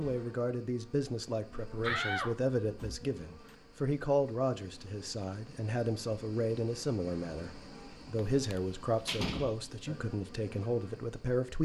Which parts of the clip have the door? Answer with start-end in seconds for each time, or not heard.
1.8-3.5, 8.2-9.7.